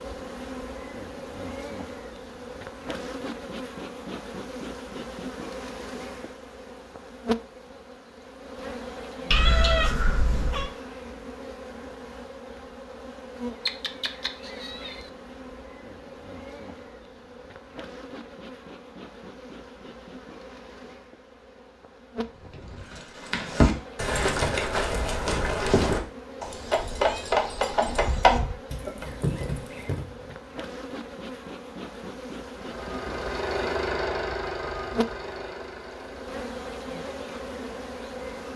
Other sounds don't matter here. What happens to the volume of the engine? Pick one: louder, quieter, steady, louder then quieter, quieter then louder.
quieter.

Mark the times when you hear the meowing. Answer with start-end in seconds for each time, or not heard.
9.3-10.7, 13.7-15.1, 26.8-28.6.